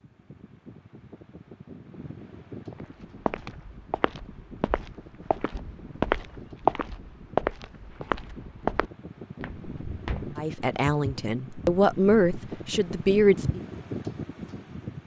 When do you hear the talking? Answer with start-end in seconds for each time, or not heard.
10.3-13.6.